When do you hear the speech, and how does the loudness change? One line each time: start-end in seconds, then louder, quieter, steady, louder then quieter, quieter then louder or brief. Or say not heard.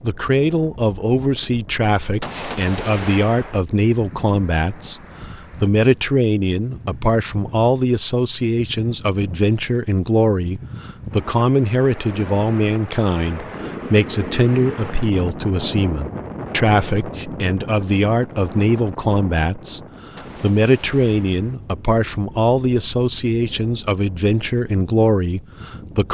0.0-26.0 steady.